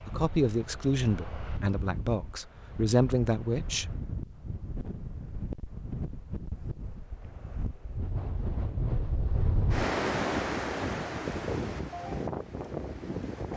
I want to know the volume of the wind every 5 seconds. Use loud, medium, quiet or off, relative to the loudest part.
medium, loud, loud.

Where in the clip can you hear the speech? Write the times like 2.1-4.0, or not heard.
0.1-3.9.